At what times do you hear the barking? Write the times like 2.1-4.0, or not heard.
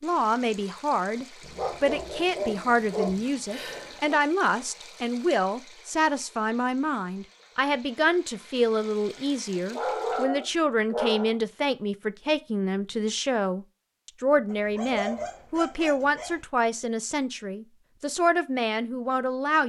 1.6-4.2, 9.7-11.3, 14.4-16.4.